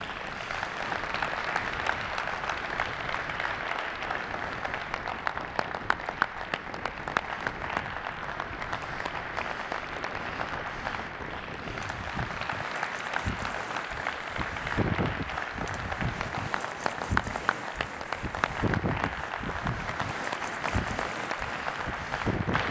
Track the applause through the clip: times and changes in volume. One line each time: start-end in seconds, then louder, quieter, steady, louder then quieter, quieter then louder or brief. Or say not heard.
0.0-22.6 steady.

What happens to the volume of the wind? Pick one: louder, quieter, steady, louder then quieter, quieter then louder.
louder.